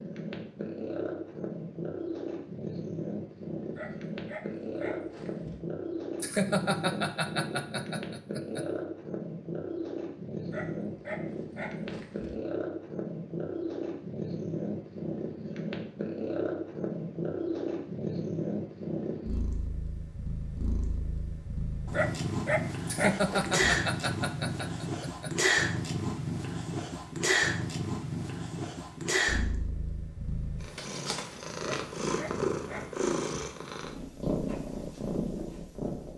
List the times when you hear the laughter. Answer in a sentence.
You can hear the laughter from 6.2 to 8.7 s and from 22.9 to 25.3 s.